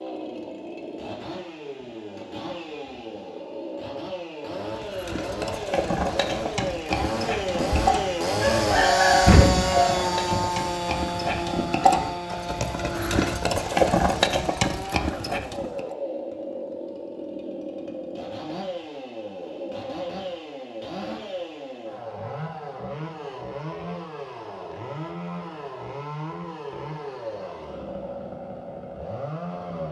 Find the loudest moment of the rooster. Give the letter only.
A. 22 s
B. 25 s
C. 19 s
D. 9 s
D.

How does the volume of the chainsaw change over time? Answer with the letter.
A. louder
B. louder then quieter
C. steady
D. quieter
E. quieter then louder
B.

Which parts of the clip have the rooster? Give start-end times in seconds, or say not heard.
7.5-10.4.